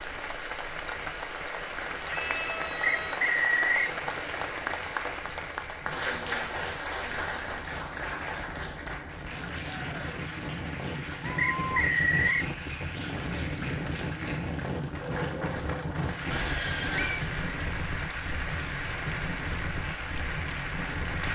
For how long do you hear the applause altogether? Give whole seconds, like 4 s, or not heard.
21 s.